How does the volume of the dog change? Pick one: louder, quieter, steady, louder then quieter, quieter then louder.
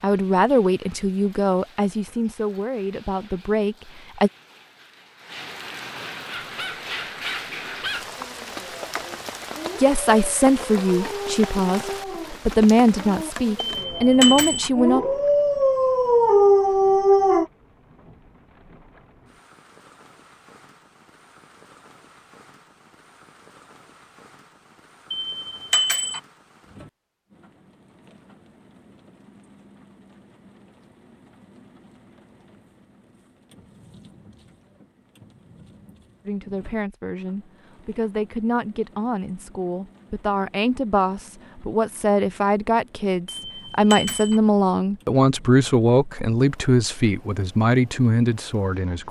louder.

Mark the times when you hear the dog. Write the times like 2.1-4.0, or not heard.
6.2-17.4.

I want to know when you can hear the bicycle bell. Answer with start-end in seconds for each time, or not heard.
13.7-14.7, 25.1-26.2, 43.3-44.4.